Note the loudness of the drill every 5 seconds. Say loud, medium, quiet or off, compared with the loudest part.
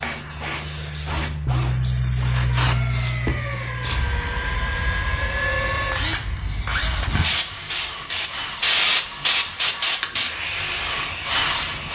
medium, loud, loud.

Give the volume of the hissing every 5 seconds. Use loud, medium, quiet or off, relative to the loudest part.
loud, loud, medium.